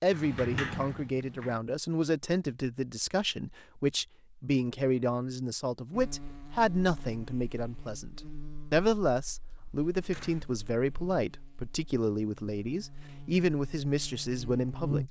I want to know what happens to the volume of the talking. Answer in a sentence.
The loudness of the talking stays about the same.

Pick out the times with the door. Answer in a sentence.
You can hear the door from 0.1 to 1.6 s and from 10.0 to 10.4 s.